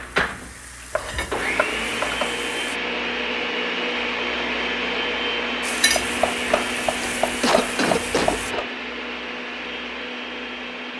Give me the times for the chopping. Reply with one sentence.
You can hear the chopping from 0.9 to 2.2 s and from 6.0 to 8.7 s.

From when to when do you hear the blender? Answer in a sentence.
The blender can be heard from 0.0 to 10.9 s.